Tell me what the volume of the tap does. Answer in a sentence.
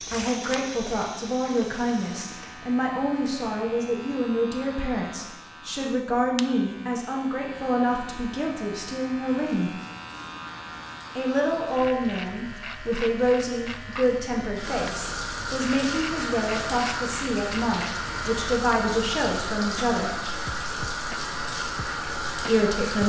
The loudness of the tap goes up.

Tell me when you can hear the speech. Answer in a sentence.
You can hear the speech from 0.1 to 9.8 s, from 11.2 to 20.1 s and from 22.4 to 23.0 s.